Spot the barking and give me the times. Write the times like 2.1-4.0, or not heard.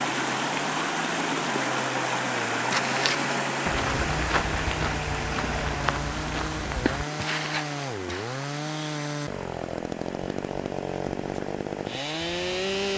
not heard.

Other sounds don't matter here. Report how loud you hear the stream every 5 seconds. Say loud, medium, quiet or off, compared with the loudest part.
loud, medium, quiet.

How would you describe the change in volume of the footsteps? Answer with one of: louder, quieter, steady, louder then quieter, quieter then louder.
steady.